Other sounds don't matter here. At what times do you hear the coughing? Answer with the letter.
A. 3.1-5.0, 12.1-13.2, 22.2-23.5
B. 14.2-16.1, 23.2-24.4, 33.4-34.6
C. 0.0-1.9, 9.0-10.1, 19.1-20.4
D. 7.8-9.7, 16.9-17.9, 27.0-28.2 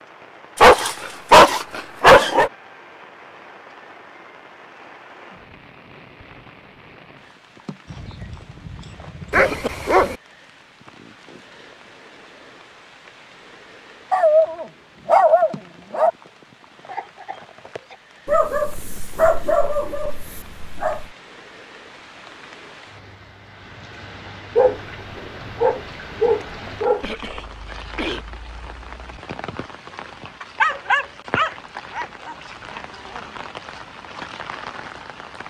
D.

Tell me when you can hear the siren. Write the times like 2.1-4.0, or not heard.
not heard.